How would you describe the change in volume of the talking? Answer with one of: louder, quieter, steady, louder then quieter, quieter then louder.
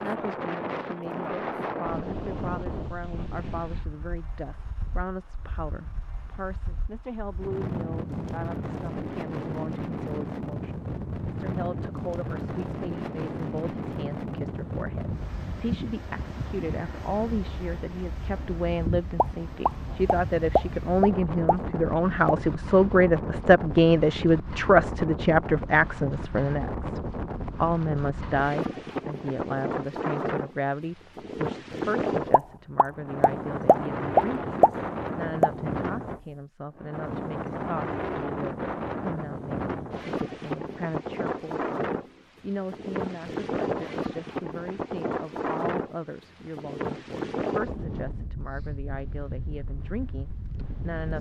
louder then quieter.